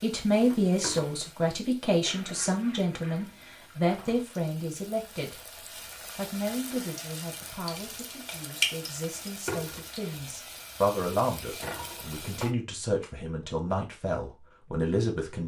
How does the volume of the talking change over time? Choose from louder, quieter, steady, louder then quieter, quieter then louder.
quieter then louder.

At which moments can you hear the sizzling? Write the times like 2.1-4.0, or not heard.
0.0-12.5.